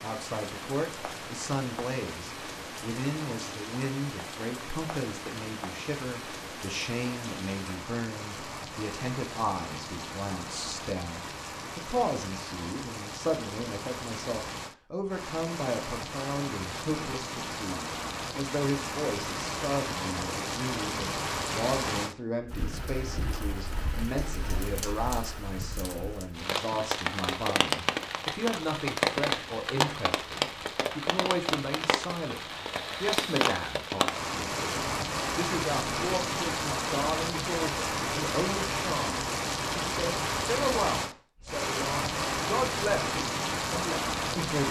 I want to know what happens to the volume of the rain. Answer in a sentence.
The loudness of the rain goes up.